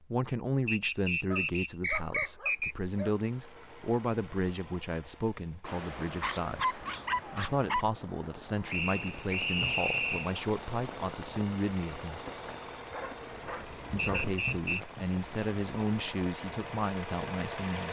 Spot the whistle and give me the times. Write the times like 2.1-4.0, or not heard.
0.7-2.8, 8.7-10.3, 13.9-14.8.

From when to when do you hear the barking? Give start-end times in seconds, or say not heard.
1.3-3.1, 6.2-7.8, 12.9-14.4.